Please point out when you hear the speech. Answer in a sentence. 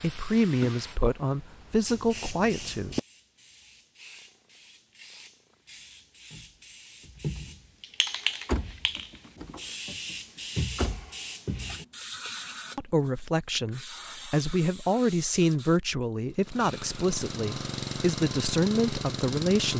You can hear the speech from 0.0 to 3.0 s and from 12.8 to 19.7 s.